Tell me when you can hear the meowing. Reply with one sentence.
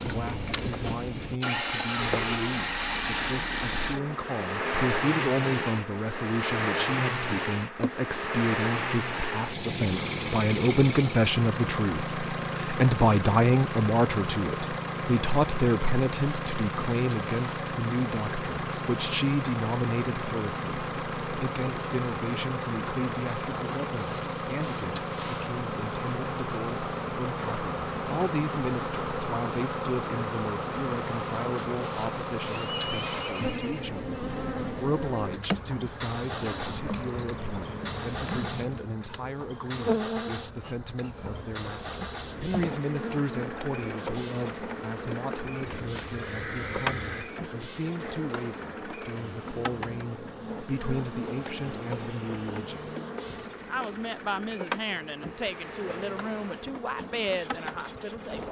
You can't hear the meowing here.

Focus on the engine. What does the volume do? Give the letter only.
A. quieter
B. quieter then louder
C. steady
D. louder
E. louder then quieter
A.